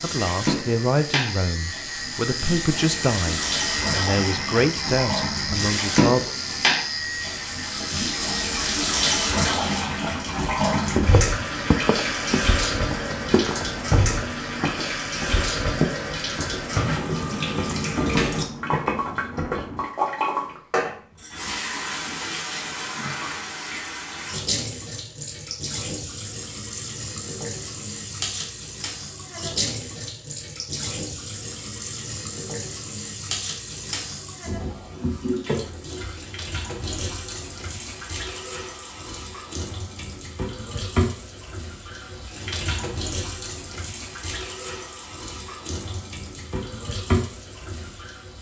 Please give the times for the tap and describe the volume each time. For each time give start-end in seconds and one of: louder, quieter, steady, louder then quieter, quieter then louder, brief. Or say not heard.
0.0-48.3 quieter.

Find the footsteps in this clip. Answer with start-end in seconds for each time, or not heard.
10.0-19.9.